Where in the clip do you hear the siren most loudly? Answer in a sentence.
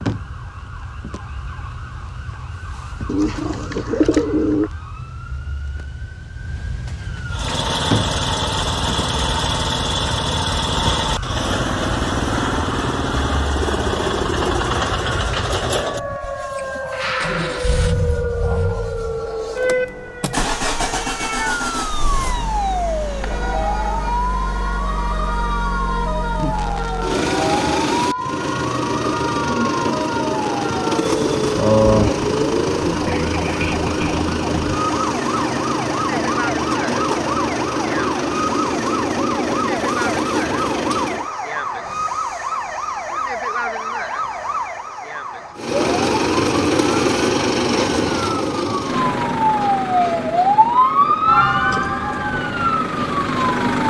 The volume of the siren peaks at 51 seconds.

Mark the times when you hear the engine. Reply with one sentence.
You can hear the engine from 7.3 to 41.3 s and from 45.5 to 53.8 s.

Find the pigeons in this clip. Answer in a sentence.
The pigeons can be heard from 3.0 to 4.7 s and from 31.0 to 32.9 s.